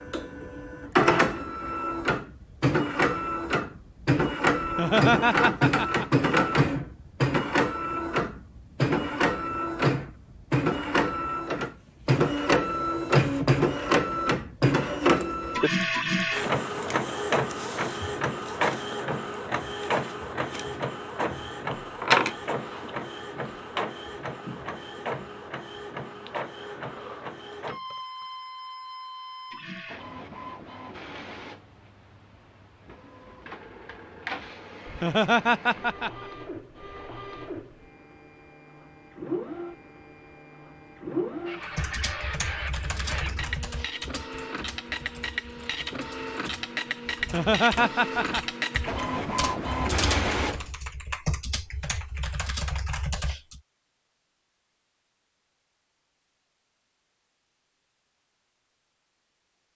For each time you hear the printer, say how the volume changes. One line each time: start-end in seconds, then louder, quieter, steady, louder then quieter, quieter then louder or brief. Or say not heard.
0.0-50.6 quieter then louder.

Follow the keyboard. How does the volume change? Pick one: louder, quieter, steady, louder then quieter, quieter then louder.
quieter then louder.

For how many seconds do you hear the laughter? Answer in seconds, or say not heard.
4 s.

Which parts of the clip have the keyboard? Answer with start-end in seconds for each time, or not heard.
41.6-53.6.